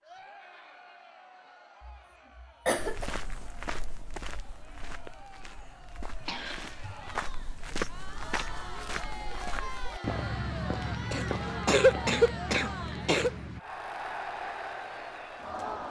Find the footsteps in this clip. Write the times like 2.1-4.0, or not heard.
2.8-13.6.